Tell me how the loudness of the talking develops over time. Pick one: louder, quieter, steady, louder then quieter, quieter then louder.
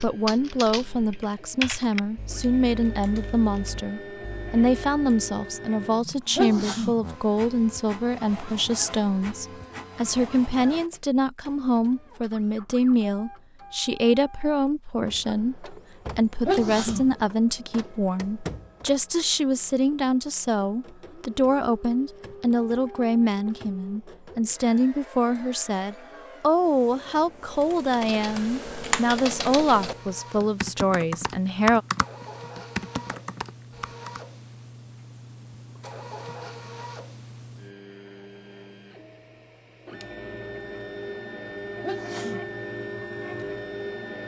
steady.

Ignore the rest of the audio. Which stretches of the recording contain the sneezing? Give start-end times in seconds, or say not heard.
6.3-7.0, 16.4-17.1, 41.8-42.5.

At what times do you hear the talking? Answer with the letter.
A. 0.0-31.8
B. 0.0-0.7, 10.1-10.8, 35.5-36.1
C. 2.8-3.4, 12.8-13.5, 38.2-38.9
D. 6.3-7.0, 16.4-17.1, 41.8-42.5
A.